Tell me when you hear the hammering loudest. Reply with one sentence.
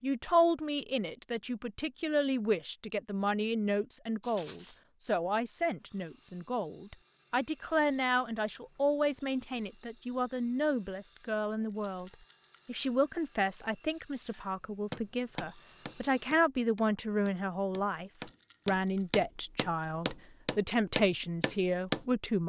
The volume of the hammering peaks at 22 seconds.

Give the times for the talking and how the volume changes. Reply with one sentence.
The talking can be heard from 0.0 to 22.4 s, at a steady volume.